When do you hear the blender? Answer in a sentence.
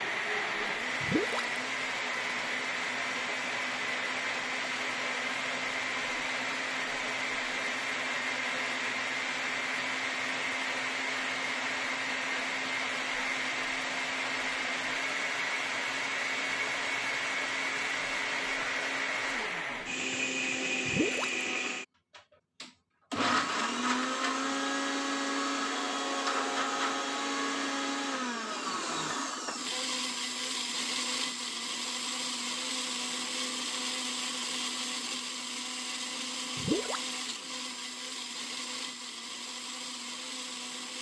The blender can be heard from 0.0 to 40.9 s.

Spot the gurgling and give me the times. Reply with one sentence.
The gurgling can be heard from 1.0 to 1.4 s, from 20.9 to 21.3 s and from 36.5 to 37.0 s.